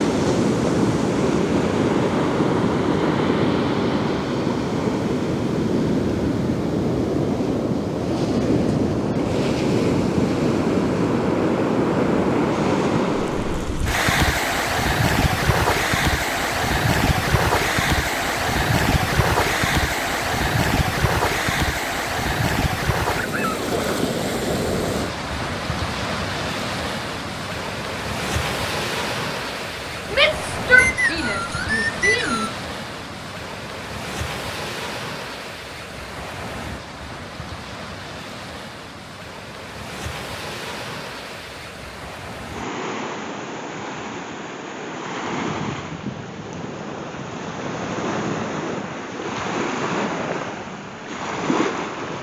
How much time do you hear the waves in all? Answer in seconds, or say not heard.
52 s.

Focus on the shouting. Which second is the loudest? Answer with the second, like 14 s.
31 s.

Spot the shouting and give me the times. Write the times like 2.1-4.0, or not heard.
30.1-32.5.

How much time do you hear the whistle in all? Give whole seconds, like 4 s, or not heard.
2 s.